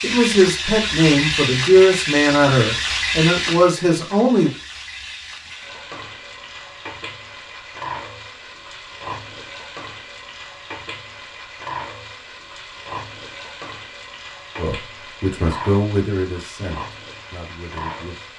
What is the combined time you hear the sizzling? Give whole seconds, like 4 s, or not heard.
18 s.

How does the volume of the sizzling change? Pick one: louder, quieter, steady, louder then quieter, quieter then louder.
quieter.